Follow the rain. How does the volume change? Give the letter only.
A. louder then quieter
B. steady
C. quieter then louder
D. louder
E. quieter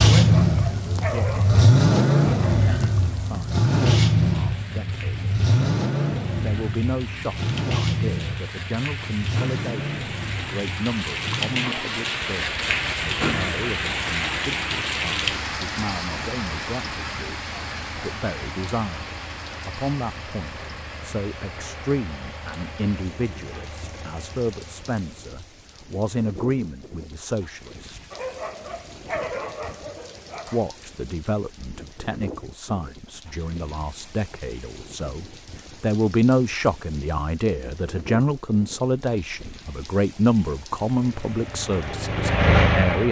A.